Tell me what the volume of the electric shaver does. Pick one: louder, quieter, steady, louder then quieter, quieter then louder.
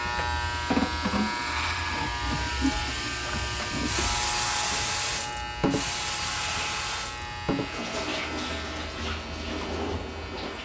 quieter.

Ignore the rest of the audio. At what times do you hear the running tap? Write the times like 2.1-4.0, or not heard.
0.0-10.6.